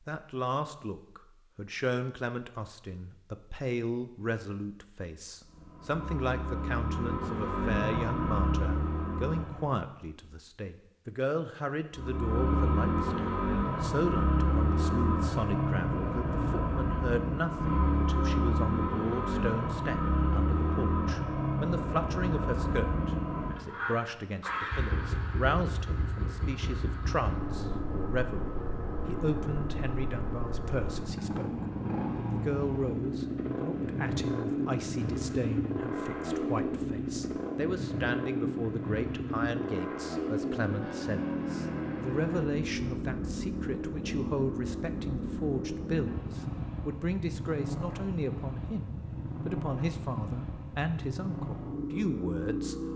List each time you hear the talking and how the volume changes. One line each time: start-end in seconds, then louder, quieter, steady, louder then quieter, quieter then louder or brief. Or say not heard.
0.1-31.6 steady
32.1-52.8 steady.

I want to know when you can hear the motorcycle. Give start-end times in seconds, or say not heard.
5.5-9.8, 11.9-52.9.